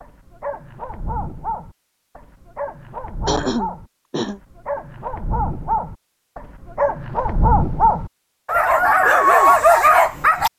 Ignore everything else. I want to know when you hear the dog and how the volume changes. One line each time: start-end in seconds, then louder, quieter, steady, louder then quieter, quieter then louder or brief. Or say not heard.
0.0-10.5 louder.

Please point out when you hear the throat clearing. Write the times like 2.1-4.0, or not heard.
3.2-4.4.